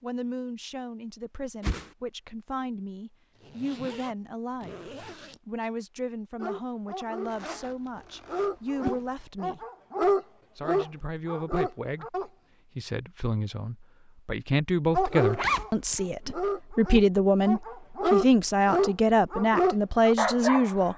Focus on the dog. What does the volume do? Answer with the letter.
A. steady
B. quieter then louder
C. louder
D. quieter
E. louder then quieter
C.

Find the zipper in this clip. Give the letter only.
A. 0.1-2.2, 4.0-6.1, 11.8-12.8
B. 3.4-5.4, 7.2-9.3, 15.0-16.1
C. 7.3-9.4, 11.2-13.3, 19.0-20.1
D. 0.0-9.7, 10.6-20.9
B.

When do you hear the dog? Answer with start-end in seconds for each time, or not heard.
6.3-12.3, 14.9-20.9.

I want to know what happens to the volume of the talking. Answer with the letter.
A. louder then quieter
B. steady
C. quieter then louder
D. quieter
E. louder
E.